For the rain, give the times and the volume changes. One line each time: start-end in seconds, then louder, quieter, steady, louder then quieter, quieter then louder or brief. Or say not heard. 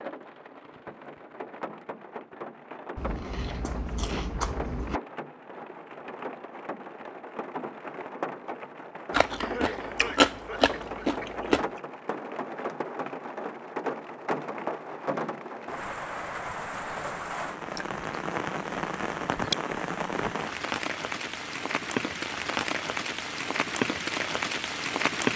0.0-25.3 louder.